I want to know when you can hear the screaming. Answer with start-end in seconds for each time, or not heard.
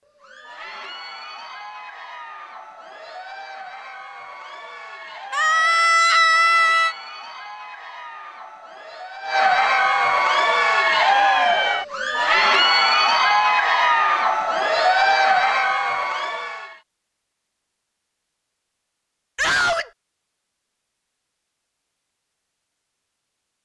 5.3-7.0, 19.4-19.9.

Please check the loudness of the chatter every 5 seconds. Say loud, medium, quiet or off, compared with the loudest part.
quiet, medium, loud, loud, off.